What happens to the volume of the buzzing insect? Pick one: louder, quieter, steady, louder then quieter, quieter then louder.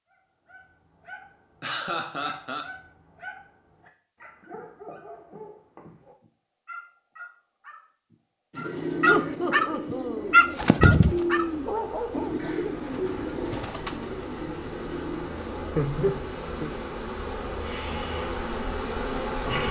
louder.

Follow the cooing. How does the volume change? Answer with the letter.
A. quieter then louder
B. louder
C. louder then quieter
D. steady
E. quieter
C.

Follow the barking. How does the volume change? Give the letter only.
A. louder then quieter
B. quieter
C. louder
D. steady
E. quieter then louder
C.